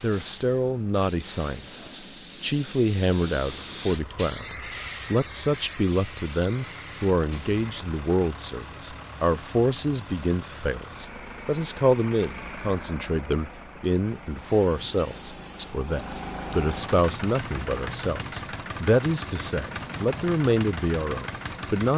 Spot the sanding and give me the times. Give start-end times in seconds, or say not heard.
not heard.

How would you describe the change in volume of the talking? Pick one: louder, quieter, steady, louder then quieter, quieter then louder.
steady.